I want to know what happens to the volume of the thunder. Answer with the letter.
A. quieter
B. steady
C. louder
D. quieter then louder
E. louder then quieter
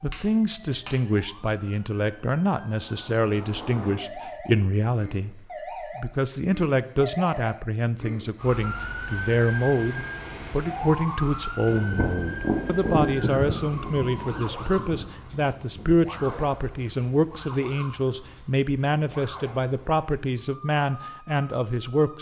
A.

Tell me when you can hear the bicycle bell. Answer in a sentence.
You can hear the bicycle bell from 0.1 to 1.1 s.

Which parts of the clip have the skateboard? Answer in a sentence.
You can't hear the skateboard here.